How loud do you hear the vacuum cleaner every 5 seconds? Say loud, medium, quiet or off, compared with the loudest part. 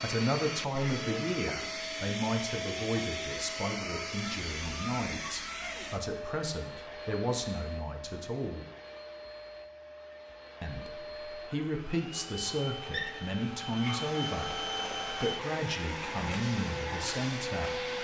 loud, medium, loud, loud.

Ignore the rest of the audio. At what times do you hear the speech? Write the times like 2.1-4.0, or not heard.
0.0-8.7, 10.6-17.9.